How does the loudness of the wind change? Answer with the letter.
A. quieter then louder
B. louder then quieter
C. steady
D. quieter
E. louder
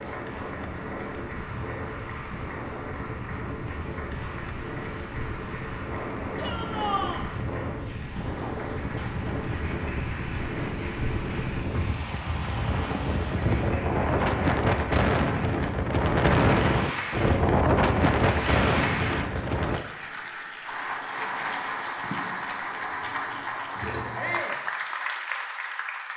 E.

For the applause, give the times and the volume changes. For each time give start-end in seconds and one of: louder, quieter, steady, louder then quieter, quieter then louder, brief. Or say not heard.
0.0-26.1 louder.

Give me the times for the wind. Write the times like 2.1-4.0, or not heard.
0.0-19.9.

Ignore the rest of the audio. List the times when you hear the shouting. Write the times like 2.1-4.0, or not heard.
6.3-7.2, 24.1-24.6.